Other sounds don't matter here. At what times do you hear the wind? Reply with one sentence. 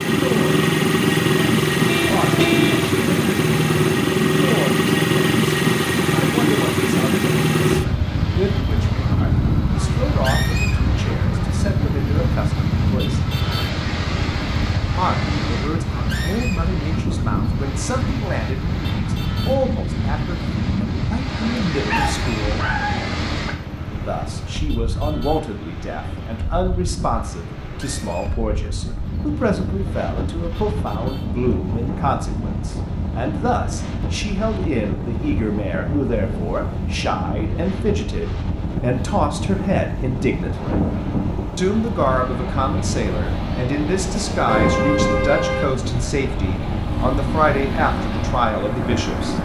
You can hear the wind from 0.0 to 49.3 s.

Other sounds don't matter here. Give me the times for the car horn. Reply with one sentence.
The car horn can be heard from 1.9 to 2.9 s and from 44.5 to 45.9 s.